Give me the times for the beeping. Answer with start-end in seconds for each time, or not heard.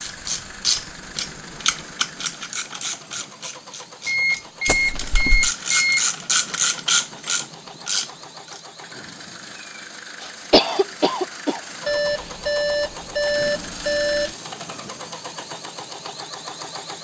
4.0-6.0, 11.8-14.3.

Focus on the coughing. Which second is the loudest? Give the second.
11 s.